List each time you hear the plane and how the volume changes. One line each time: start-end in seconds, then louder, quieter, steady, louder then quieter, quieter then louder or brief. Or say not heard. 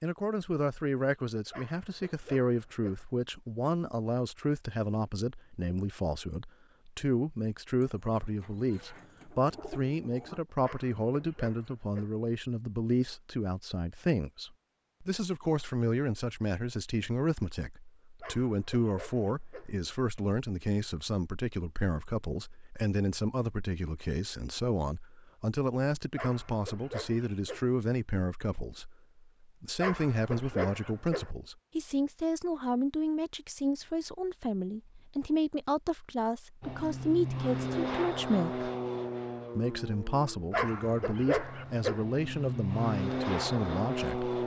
36.6-44.4 quieter then louder.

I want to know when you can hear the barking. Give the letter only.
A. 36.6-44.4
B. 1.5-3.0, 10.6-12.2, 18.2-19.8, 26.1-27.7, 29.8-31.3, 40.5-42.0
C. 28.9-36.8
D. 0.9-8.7
B.